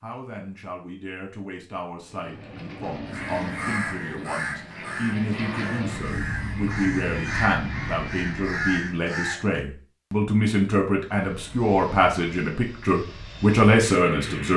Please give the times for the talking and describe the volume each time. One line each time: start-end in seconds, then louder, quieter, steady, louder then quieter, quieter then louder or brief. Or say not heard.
0.0-14.5 louder.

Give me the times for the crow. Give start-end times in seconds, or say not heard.
3.0-9.6.